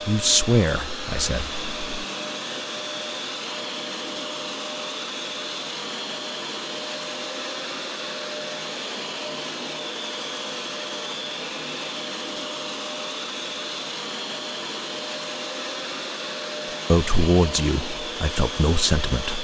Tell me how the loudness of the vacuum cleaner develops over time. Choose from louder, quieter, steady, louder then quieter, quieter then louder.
steady.